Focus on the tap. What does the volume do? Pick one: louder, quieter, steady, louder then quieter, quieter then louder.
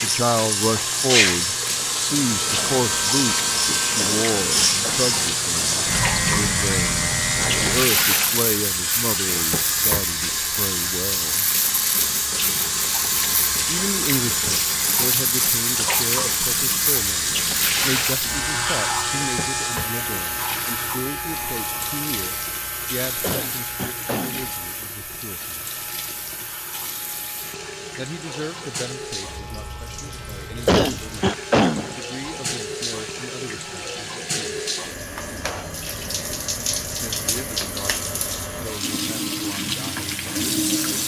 quieter then louder.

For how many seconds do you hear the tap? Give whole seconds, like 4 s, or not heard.
41 s.